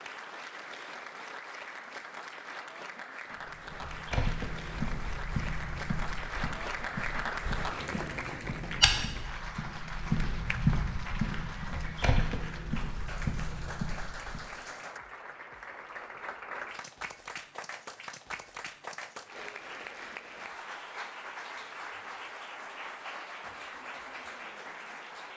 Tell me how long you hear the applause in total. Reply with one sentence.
The applause can be heard for 25 seconds in total.